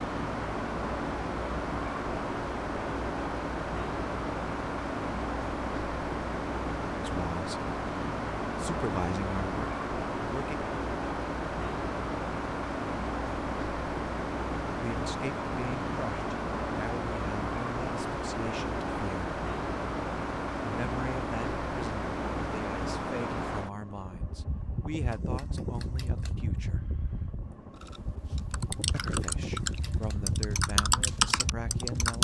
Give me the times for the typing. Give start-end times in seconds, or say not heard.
27.8-32.2.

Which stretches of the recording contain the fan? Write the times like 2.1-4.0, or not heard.
0.0-32.2.